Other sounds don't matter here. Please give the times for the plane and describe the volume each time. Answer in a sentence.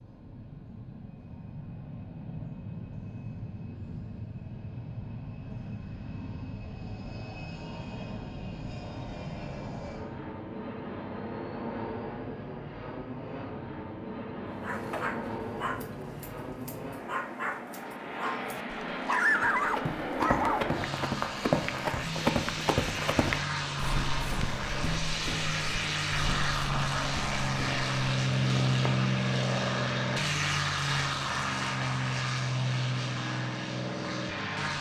The plane can be heard from 0.0 to 34.7 s, getting louder.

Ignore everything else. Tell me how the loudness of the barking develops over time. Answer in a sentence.
The loudness of the barking goes down, then up.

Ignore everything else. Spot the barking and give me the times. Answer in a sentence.
You can hear the barking from 14.6 to 20.6 s.